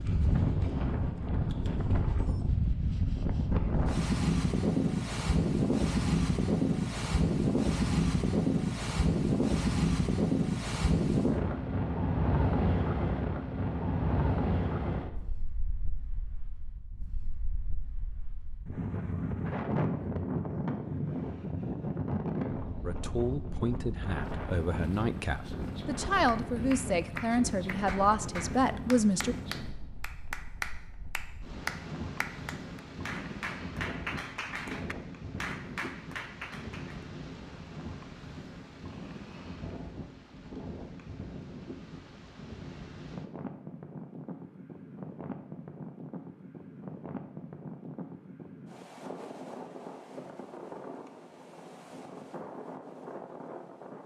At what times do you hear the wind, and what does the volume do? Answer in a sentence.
The wind can be heard from 0.0 to 54.0 s, getting quieter.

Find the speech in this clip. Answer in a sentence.
You can hear the speech from 22.8 to 29.4 s.